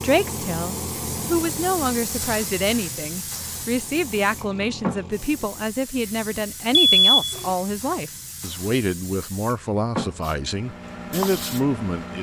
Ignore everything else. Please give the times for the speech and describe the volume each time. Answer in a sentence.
The speech can be heard from 0.0 to 12.1 s, at a steady volume.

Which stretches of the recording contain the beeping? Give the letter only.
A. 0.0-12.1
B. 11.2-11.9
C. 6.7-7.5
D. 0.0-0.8
C.